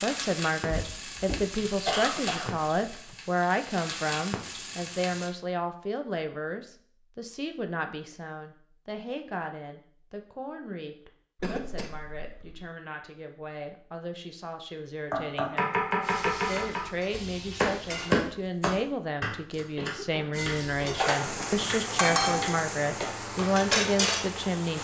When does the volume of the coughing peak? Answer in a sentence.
The volume of the coughing peaks at 2 seconds.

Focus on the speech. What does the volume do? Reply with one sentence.
The volume of the speech goes down, then up.